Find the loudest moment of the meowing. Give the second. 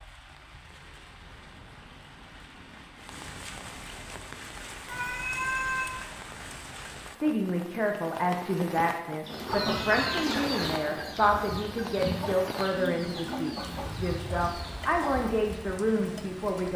6 s.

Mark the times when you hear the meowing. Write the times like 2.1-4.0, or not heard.
4.8-6.0, 9.5-10.3.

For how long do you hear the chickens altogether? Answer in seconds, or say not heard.
6 s.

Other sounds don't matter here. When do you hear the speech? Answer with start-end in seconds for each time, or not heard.
7.2-16.7.